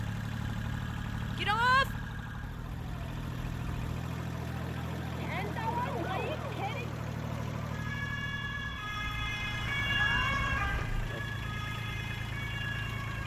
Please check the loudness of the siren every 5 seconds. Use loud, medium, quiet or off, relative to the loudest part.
quiet, loud, loud.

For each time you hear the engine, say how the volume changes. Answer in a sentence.
You can hear the engine from 0.0 to 13.2 s, at a steady volume.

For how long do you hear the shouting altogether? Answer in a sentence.
The shouting can be heard for 3 seconds in total.